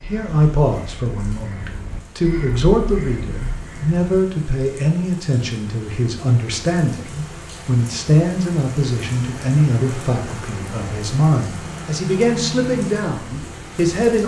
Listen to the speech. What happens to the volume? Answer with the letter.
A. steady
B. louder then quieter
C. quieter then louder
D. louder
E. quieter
A.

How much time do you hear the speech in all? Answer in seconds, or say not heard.
14 s.